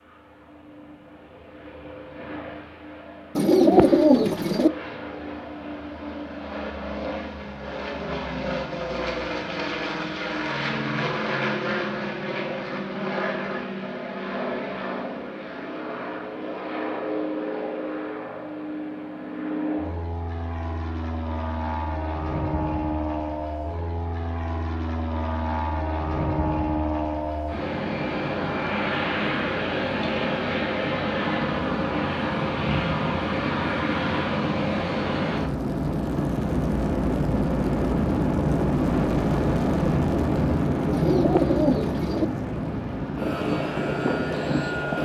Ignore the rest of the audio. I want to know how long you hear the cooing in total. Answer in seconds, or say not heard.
3 s.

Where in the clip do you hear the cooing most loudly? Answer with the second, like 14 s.
4 s.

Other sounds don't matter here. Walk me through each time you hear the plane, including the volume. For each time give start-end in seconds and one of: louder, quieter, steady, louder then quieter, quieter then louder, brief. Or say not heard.
0.0-45.0 louder.